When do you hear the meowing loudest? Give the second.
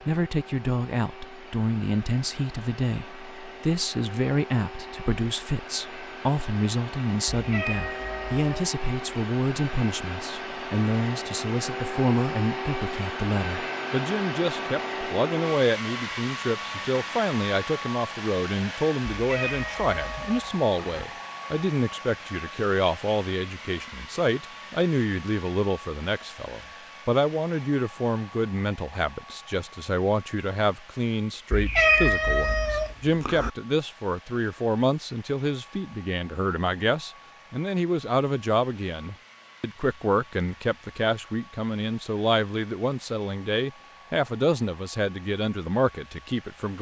32 s.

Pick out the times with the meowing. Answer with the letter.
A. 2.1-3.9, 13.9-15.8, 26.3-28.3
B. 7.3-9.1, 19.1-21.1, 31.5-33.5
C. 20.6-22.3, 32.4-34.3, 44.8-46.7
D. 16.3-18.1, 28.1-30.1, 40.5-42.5
B.